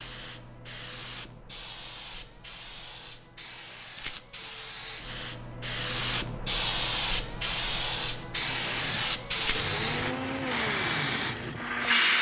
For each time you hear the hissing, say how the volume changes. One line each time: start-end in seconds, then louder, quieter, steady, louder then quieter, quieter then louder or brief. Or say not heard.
0.0-12.1 louder.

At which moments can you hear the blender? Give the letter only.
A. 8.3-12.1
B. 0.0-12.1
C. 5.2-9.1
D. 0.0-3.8
A.